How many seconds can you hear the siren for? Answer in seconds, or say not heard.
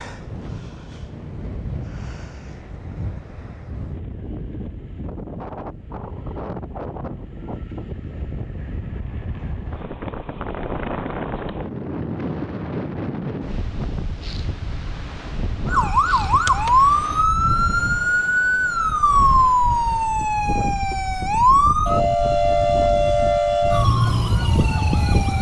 10 s.